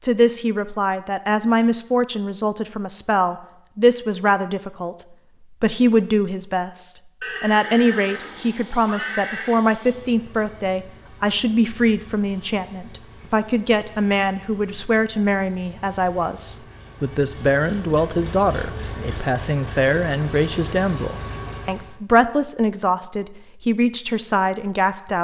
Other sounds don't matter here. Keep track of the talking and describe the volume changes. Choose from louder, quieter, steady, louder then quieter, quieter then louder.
steady.